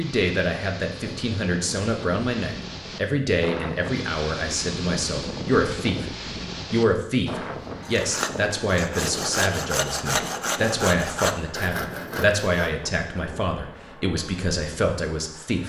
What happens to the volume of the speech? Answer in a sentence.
The loudness of the speech stays about the same.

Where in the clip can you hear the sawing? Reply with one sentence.
You can hear the sawing from 7.7 to 12.8 s.